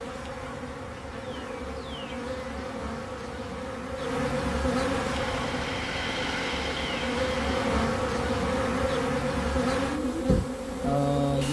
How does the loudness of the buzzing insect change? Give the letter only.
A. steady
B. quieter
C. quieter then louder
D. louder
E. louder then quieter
D.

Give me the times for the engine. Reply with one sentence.
You can hear the engine from 5.0 to 7.8 s.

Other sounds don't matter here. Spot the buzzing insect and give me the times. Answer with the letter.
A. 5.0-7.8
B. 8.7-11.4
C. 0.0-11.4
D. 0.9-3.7
C.